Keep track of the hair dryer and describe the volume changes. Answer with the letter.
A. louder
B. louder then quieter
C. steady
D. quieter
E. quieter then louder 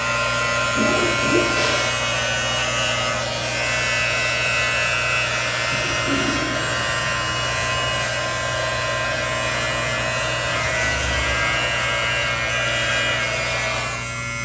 C.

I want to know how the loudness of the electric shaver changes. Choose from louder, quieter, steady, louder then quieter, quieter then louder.
steady.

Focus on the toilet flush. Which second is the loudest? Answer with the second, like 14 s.
1 s.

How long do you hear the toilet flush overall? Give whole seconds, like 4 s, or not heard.
4 s.